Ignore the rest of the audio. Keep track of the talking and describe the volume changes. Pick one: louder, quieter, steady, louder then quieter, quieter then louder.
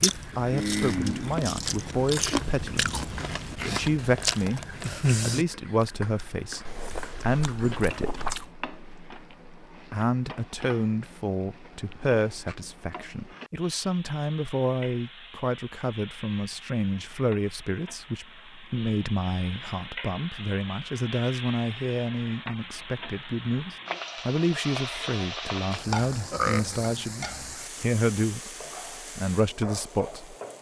steady.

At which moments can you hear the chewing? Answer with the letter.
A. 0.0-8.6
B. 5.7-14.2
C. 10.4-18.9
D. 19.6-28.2
A.